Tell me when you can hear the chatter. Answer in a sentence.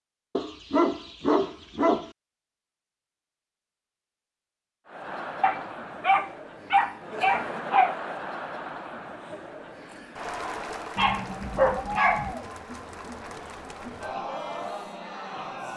The chatter can be heard from 4.8 to 15.7 s.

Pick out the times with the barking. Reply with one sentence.
The barking can be heard from 0.3 to 2.1 s, from 5.4 to 8.0 s and from 10.9 to 12.3 s.